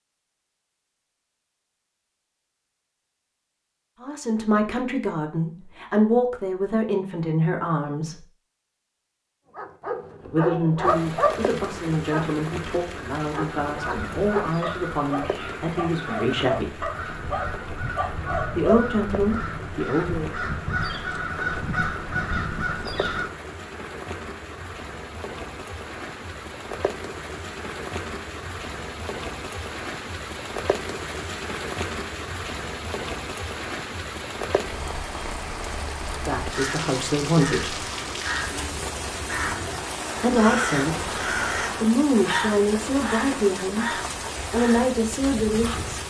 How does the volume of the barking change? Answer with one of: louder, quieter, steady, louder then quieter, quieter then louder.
quieter then louder.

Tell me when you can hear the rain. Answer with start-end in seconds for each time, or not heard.
10.8-46.0.